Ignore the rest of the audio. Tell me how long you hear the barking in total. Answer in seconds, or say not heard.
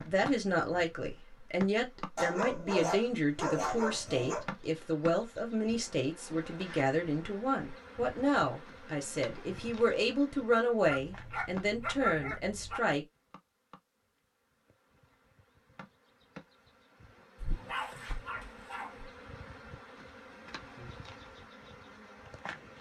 6 s.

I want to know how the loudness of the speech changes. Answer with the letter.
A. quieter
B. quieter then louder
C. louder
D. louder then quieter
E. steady
E.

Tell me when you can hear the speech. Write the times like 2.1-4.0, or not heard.
0.1-13.1.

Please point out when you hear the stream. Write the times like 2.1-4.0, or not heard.
not heard.